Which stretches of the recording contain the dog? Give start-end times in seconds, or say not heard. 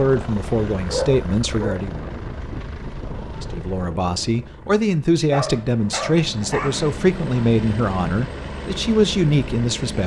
0.8-1.9, 5.3-6.9.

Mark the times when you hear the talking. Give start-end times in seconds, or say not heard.
0.0-2.0, 3.4-10.0.